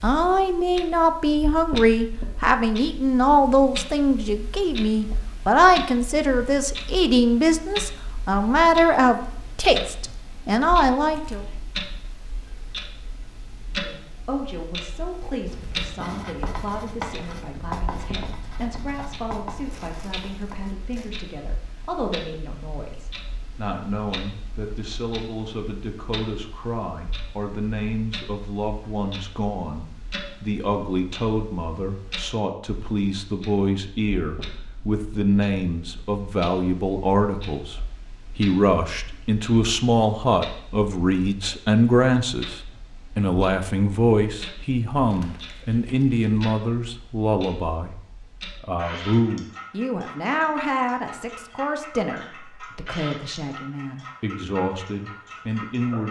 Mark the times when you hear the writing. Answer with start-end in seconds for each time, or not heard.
15.1-20.7.